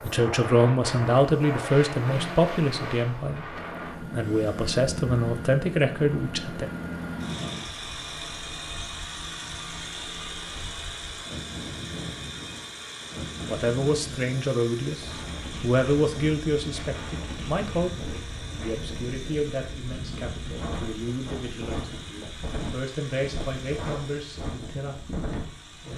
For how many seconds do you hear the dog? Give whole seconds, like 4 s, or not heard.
not heard.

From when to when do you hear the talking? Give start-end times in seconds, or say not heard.
0.0-3.5, 4.1-6.7, 13.4-25.9.